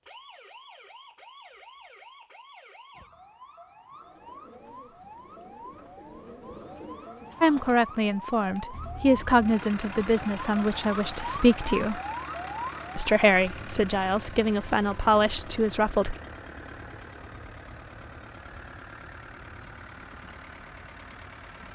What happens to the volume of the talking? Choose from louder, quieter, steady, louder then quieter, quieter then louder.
steady.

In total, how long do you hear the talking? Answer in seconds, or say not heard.
8 s.